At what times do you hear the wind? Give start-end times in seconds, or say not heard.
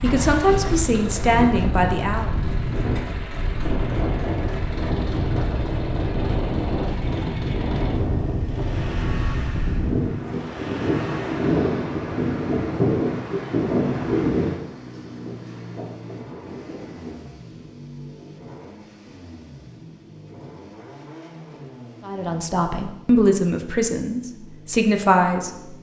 0.0-17.3.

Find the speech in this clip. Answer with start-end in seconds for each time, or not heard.
0.0-2.3, 22.0-25.7.